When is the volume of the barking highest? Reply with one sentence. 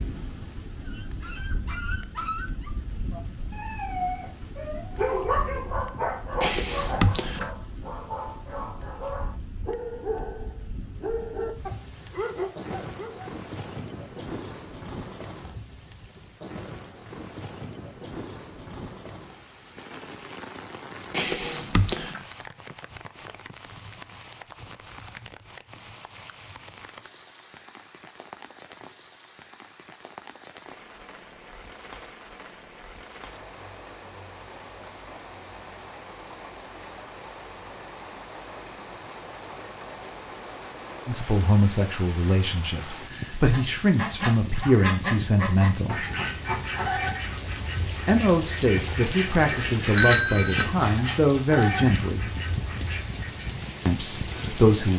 The volume of the barking peaks at 5 seconds.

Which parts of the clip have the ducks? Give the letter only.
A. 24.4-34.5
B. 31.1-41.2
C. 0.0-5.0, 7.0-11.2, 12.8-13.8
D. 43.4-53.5
D.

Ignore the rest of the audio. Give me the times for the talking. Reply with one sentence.
You can hear the talking from 41.0 to 46.0 s, from 48.0 to 52.3 s and from 53.9 to 54.9 s.